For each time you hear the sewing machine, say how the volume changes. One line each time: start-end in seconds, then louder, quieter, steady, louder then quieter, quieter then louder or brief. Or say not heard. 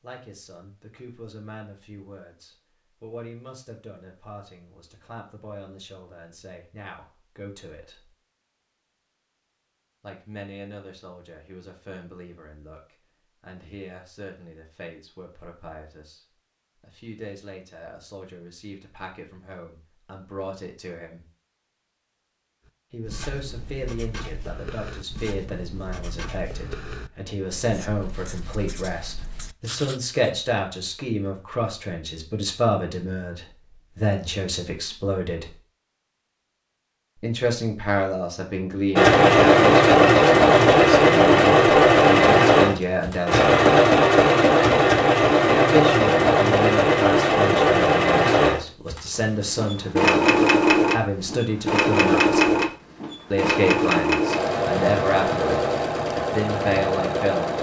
39.0-57.5 quieter.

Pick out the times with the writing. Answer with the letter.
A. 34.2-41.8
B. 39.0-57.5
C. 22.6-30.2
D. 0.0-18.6
C.